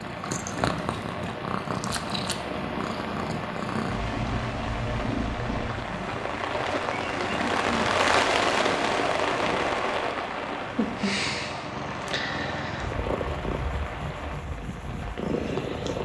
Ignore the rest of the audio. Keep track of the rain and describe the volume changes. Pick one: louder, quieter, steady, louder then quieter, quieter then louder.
louder then quieter.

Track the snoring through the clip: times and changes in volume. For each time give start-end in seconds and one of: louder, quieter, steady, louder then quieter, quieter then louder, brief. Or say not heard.
not heard.